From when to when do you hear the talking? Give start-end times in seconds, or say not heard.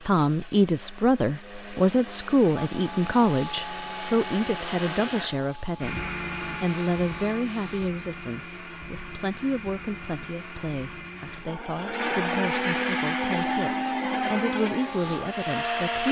0.1-16.0.